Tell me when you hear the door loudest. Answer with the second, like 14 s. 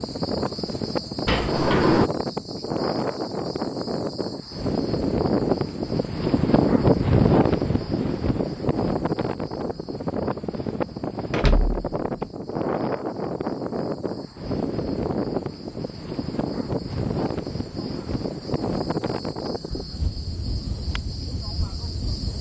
2 s.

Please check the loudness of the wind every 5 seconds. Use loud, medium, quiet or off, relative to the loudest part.
medium, loud, medium, medium, quiet.